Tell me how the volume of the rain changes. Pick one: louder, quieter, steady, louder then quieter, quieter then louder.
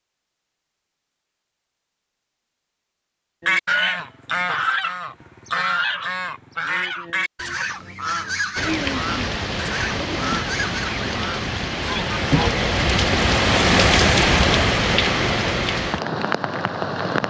louder then quieter.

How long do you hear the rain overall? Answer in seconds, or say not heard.
9 s.